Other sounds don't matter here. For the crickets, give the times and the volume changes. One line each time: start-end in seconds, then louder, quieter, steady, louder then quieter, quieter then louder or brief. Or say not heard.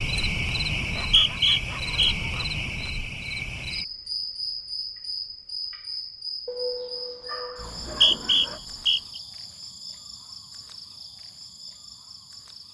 0.0-12.6 quieter.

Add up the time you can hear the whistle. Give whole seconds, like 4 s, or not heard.
3 s.